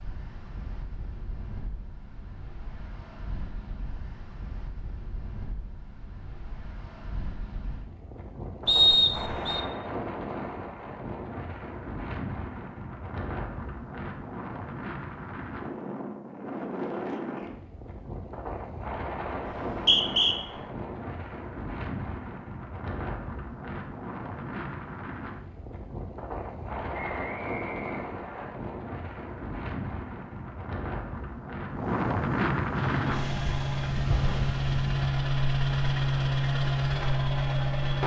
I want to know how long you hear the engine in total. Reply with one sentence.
The engine can be heard for 5 seconds in total.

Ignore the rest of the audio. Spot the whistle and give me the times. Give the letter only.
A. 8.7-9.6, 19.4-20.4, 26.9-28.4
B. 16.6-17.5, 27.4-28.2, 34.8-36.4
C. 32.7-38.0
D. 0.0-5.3
A.